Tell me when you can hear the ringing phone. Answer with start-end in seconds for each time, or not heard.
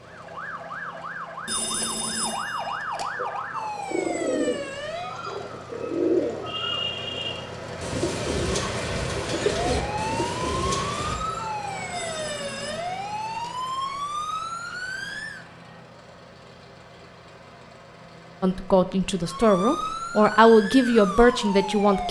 1.4-3.0, 11.9-13.3.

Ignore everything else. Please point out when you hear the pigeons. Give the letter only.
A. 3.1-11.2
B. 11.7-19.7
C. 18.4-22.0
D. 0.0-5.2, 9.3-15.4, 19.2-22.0
A.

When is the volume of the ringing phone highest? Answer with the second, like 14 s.
2 s.